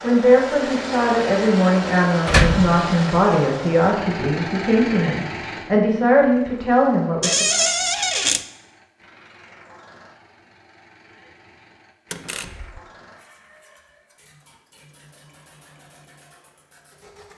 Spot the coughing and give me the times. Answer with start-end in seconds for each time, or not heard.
not heard.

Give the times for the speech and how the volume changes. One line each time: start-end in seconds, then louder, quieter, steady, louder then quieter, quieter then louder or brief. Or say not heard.
0.0-7.7 steady.